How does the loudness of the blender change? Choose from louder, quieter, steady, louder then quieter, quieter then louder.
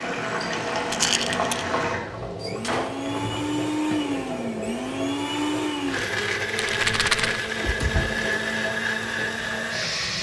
louder.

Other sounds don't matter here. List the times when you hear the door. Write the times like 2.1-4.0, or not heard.
2.4-3.4, 7.6-8.2.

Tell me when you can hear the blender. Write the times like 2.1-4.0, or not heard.
0.0-10.1.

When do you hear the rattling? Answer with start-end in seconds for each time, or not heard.
0.9-1.6, 6.5-7.4.